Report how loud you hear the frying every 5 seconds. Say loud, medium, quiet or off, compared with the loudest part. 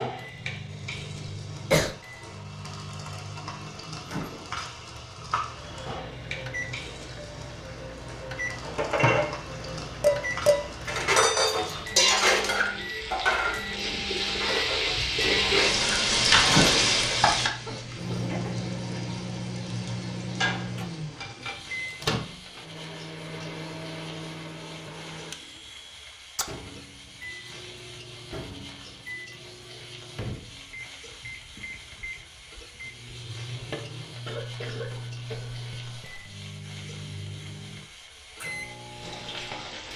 quiet, quiet, medium, loud, quiet, quiet, quiet, quiet.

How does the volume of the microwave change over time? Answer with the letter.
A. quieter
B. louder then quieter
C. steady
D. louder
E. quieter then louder
B.